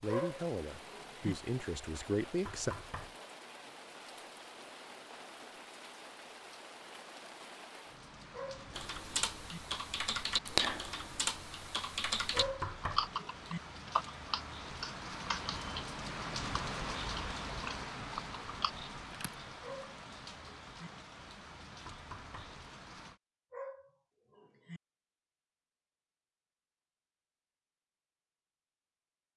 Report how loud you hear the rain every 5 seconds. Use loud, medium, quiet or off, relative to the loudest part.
medium, medium, medium, loud, medium, off.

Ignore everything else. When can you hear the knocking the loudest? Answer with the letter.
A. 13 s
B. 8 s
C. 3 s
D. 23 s
A.